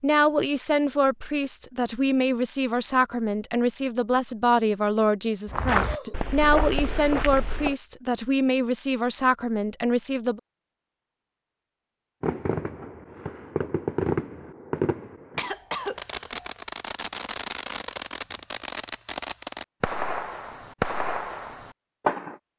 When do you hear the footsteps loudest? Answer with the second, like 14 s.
6 s.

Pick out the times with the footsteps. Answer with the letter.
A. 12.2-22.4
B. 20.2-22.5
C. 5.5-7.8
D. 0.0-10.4
C.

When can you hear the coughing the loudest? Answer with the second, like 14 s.
16 s.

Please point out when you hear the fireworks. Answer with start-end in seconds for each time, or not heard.
12.2-22.4.